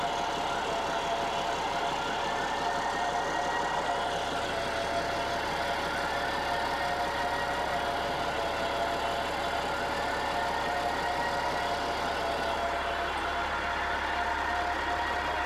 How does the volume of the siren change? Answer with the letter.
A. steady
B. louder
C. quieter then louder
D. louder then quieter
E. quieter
A.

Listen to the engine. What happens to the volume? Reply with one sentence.
The loudness of the engine stays about the same.